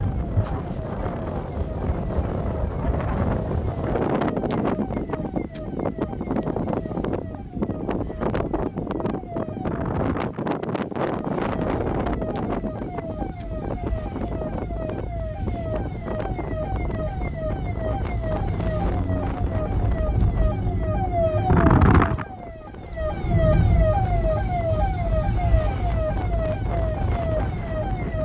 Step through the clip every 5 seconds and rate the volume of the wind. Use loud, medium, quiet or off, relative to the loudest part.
loud, loud, loud, medium, quiet, medium.